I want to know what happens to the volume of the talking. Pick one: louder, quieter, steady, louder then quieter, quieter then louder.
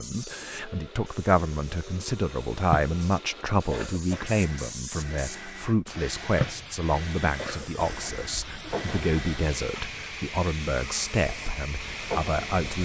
steady.